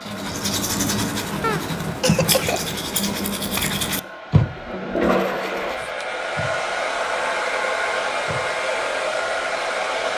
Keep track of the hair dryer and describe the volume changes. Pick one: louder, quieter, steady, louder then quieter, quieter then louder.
louder.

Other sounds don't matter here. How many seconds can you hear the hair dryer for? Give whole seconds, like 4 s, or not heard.
10 s.